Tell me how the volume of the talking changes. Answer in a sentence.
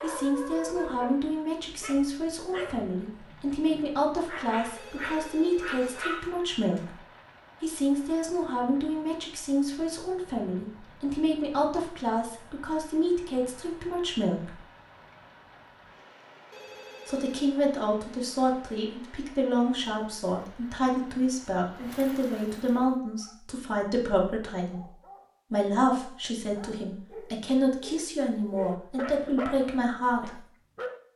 The volume of the talking stays about the same.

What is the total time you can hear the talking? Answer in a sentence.
You can hear the talking for 27 seconds altogether.